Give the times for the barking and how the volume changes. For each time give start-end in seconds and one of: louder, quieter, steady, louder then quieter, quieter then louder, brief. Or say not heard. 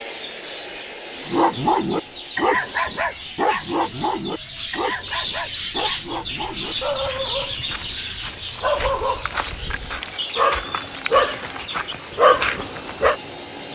1.2-13.2 quieter then louder.